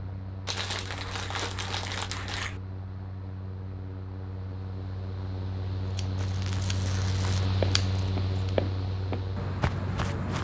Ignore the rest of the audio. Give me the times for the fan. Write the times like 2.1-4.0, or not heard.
0.0-10.3.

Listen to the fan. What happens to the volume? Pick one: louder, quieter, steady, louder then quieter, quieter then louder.
louder.